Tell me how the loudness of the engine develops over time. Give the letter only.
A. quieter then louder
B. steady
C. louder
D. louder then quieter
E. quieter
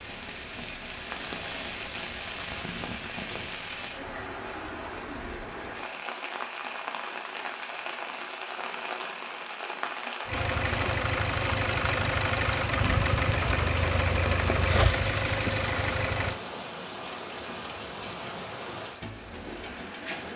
B.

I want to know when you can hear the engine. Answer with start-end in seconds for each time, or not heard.
10.2-16.4.